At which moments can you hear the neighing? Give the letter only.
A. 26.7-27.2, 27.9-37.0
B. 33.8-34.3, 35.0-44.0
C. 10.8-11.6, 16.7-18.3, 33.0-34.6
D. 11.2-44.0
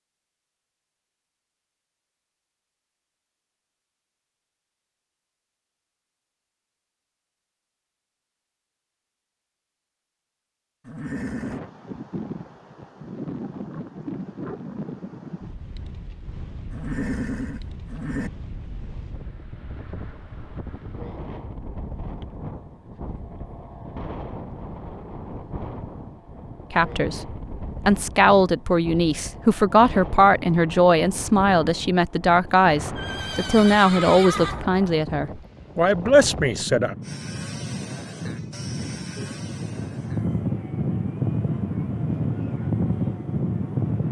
C.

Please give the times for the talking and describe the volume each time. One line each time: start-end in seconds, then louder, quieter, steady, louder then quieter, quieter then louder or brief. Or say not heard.
26.7-27.2 brief
27.9-37.0 steady.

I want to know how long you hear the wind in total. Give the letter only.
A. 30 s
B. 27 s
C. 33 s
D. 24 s
C.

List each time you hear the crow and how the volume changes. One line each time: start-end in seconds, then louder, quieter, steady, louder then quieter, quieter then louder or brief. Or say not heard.
not heard.